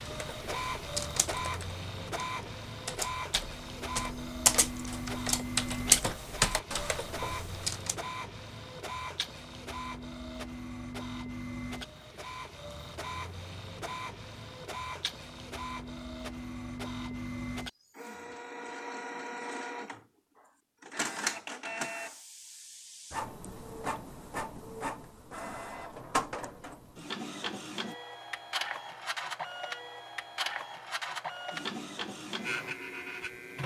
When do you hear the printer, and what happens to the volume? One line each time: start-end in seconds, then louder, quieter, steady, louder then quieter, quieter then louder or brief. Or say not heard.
0.0-33.6 steady.